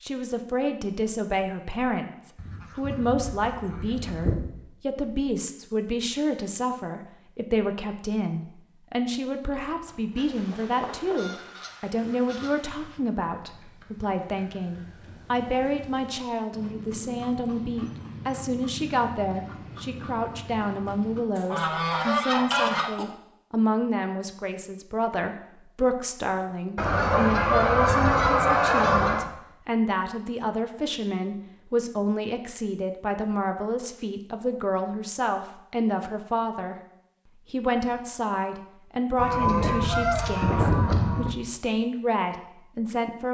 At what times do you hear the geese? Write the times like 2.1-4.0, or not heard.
2.4-4.3, 10.2-12.9, 21.4-23.1, 26.8-29.2, 39.1-41.4.